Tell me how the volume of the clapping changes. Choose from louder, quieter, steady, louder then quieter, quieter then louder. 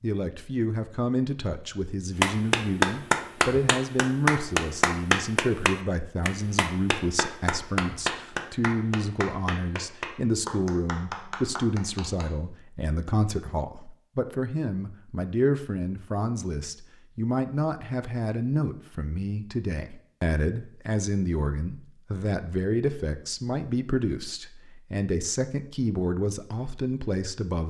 quieter.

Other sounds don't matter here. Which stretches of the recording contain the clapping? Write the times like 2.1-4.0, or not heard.
2.2-12.3.